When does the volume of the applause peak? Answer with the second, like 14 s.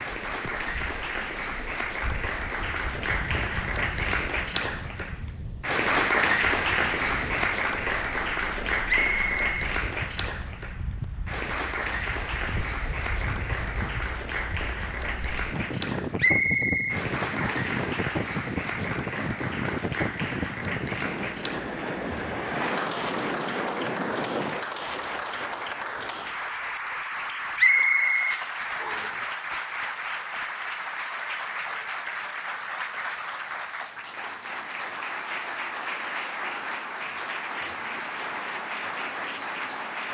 6 s.